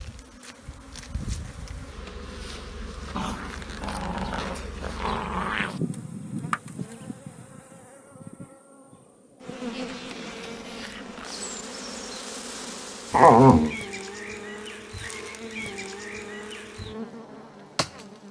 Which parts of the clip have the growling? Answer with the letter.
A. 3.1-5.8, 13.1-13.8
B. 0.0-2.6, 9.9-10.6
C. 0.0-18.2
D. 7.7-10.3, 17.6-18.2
A.